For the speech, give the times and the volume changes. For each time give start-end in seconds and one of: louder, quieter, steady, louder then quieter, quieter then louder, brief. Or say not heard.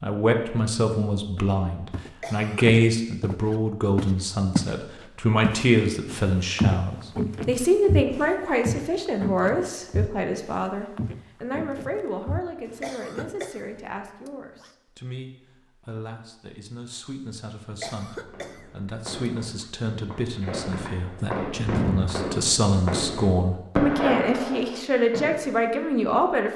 0.0-26.5 quieter then louder.